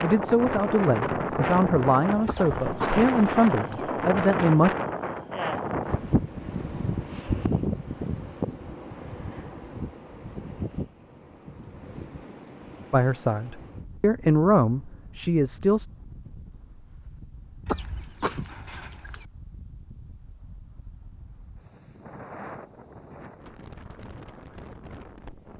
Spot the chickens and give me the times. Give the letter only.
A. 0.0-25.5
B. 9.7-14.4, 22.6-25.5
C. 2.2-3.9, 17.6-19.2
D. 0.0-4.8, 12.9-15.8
C.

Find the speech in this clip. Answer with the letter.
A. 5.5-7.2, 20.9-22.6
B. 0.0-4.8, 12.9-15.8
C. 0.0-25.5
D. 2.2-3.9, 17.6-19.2
B.